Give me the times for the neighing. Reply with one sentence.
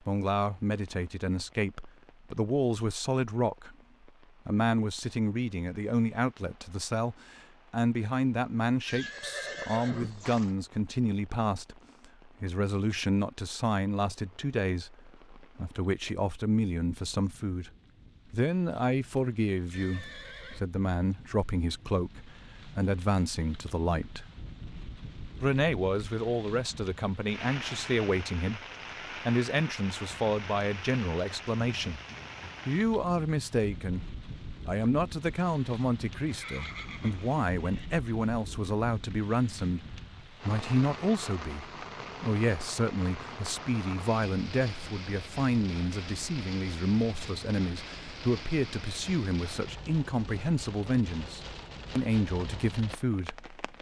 You can hear the neighing from 8.8 to 10.6 s, from 19.7 to 20.6 s and from 36.2 to 37.9 s.